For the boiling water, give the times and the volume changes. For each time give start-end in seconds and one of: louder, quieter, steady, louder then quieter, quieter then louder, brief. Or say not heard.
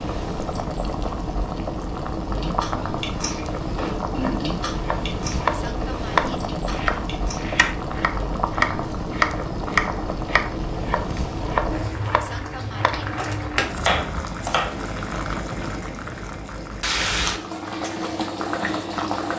0.0-19.3 steady.